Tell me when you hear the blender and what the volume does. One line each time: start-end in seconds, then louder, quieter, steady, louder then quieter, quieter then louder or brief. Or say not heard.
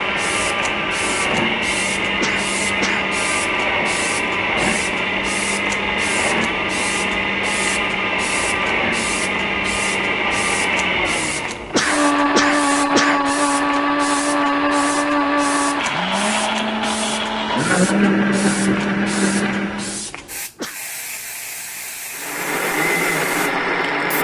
0.0-20.1 steady
22.1-24.1 brief.